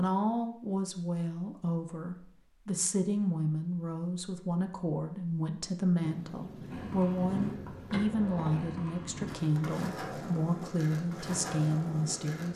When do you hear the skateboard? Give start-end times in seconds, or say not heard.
6.7-12.5.